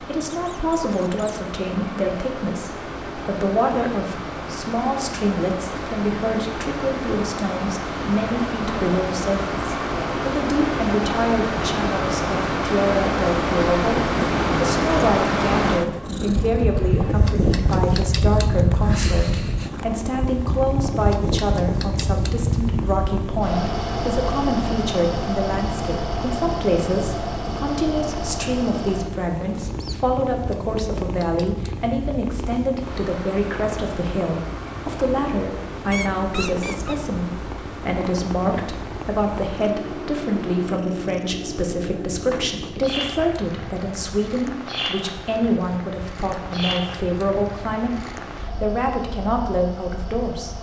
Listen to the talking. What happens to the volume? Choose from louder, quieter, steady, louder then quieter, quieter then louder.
steady.